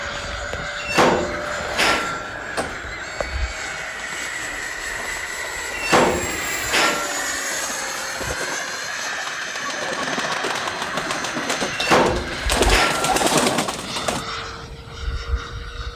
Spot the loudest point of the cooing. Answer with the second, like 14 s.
13 s.